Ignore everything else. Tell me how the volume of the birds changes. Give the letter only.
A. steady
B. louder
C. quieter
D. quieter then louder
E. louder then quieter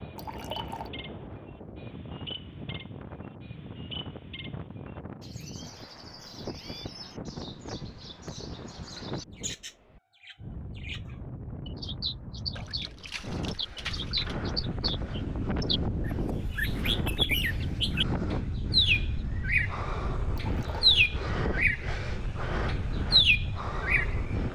B.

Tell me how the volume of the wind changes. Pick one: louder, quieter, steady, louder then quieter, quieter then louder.
louder.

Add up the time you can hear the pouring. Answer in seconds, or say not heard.
3 s.